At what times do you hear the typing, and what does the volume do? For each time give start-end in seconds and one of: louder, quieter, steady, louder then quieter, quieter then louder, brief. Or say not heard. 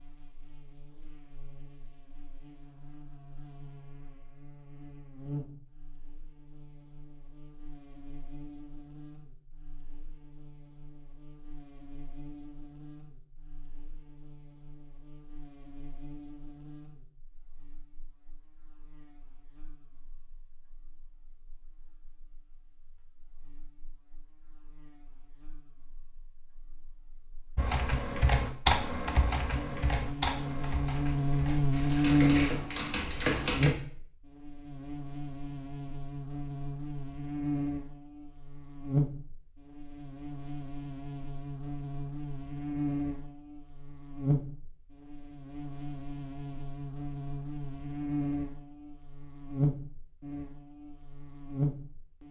27.6-33.7 quieter then louder.